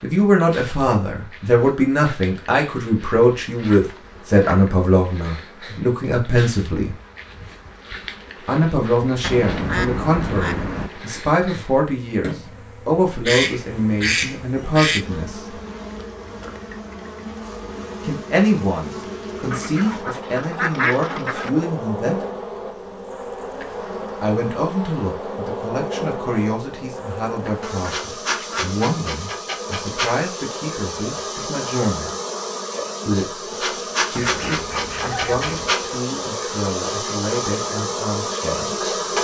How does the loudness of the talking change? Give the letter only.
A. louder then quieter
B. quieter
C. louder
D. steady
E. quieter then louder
B.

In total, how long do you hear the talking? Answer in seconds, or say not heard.
32 s.